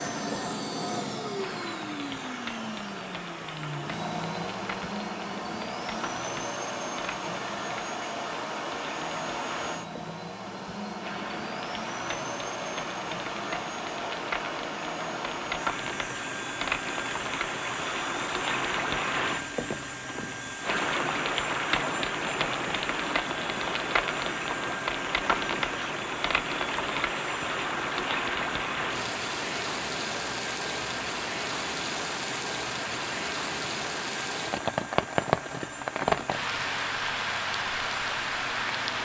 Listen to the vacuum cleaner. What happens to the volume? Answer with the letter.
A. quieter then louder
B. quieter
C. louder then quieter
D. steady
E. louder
B.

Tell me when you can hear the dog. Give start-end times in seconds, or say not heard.
not heard.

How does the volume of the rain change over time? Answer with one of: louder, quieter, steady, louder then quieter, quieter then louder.
louder.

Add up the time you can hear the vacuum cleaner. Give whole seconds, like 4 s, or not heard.
39 s.